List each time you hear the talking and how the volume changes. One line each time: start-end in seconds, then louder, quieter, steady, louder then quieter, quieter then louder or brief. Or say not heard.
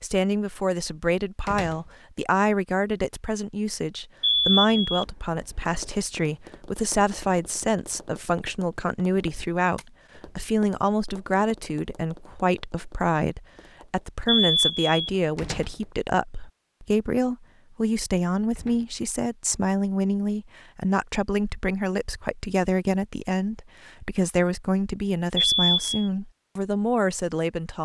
0.0-27.7 steady.